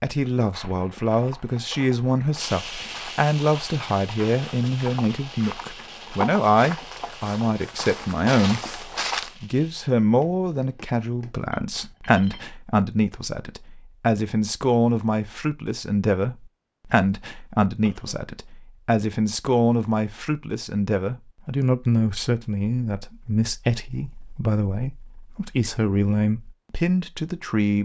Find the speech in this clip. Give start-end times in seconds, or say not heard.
0.0-27.8.